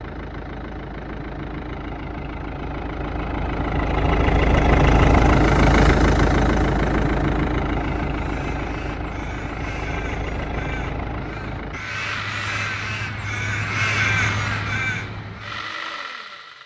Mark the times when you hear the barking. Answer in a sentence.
You can't hear the barking here.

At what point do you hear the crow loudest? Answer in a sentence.
The loudest moment of the crow is at 14 seconds.